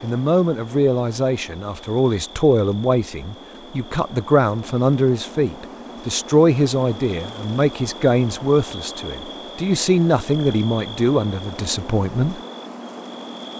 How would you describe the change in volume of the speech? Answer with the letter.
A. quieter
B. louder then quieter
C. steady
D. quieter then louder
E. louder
C.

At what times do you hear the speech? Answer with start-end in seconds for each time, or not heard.
0.0-12.4.